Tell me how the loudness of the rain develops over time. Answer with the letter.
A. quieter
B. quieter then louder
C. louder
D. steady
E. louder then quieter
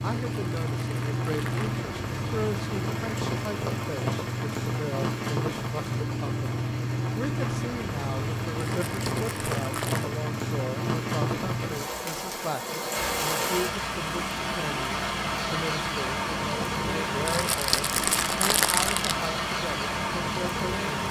D.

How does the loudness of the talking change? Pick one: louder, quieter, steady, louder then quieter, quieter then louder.
steady.